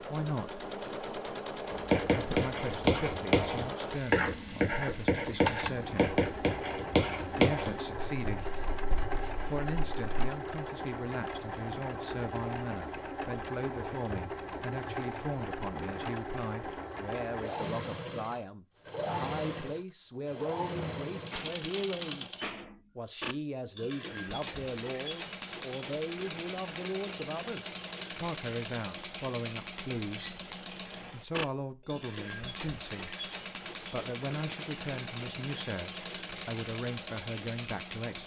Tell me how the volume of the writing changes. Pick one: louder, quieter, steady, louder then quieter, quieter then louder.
quieter.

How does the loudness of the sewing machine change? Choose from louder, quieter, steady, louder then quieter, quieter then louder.
steady.